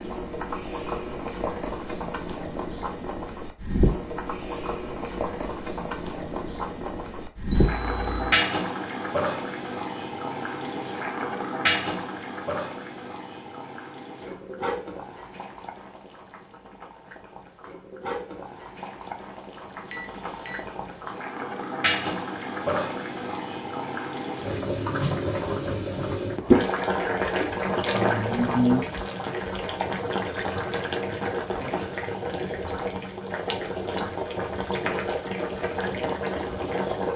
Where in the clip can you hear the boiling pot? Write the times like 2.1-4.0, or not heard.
0.0-37.1.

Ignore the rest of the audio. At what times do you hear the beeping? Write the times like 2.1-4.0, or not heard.
7.5-8.3, 19.9-20.8.